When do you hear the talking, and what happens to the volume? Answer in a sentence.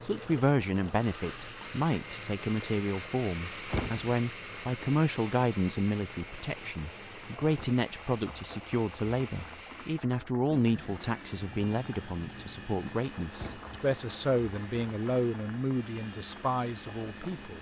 The talking can be heard from 0.0 to 17.5 s, at a steady volume.